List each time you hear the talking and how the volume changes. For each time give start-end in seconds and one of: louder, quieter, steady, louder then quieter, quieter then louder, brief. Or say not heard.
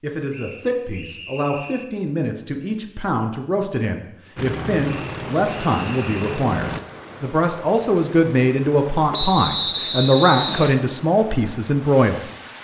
0.0-12.2 louder.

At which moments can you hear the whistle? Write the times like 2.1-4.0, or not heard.
0.3-1.9, 4.8-6.3, 9.1-10.8.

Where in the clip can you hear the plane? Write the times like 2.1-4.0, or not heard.
4.3-6.8.